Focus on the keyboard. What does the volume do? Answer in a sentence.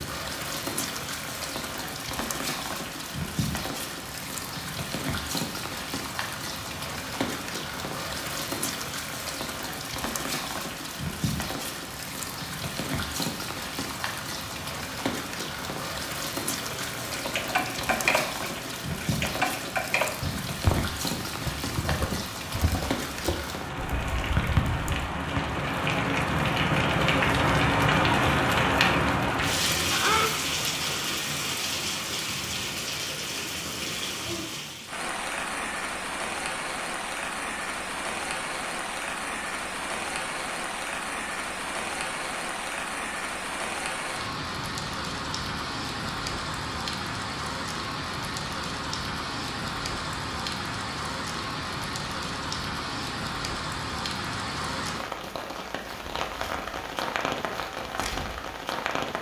The loudness of the keyboard goes down.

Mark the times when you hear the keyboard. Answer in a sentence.
The keyboard can be heard from 16.6 to 25.1 s.